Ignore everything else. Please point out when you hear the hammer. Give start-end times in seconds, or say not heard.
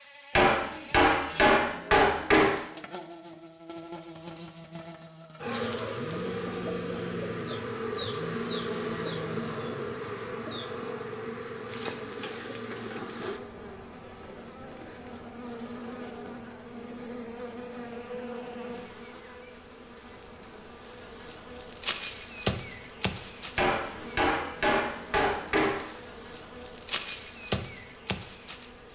0.3-2.6, 23.6-25.9.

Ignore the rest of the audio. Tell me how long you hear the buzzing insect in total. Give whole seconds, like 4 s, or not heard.
29 s.